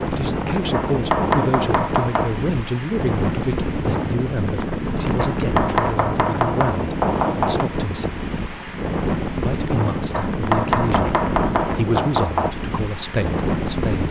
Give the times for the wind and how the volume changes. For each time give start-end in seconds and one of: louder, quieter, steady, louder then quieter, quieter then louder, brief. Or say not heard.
0.0-14.0 steady.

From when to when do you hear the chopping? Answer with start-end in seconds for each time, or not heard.
0.7-2.4, 5.2-7.7, 10.1-12.6.